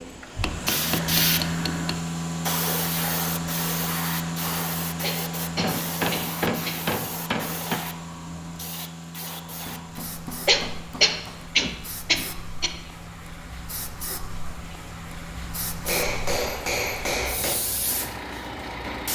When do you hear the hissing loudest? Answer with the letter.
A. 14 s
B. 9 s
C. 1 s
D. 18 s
C.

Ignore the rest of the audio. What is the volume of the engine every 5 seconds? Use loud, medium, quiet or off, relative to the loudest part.
loud, medium, quiet, medium.